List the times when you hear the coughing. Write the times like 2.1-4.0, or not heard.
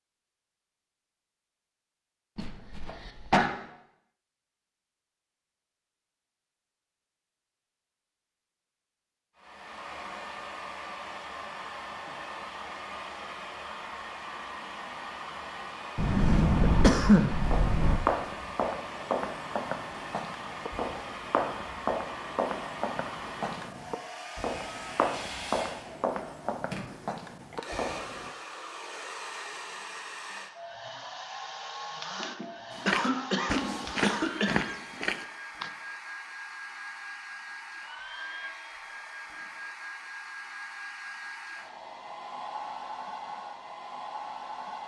2.4-3.5, 15.9-18.0, 32.2-34.6.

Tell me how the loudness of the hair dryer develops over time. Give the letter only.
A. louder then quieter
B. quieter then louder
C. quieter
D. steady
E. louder
D.